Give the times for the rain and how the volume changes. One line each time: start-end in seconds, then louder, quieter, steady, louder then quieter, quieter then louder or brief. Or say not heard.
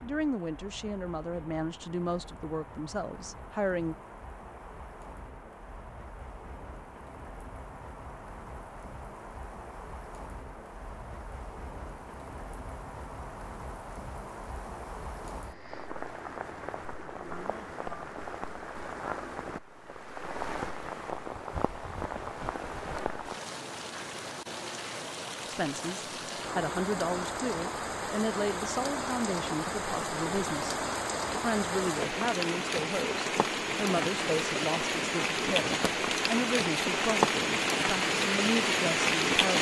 0.0-39.5 louder.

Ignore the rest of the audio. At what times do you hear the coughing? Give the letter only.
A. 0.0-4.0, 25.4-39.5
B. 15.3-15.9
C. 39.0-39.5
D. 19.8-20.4
B.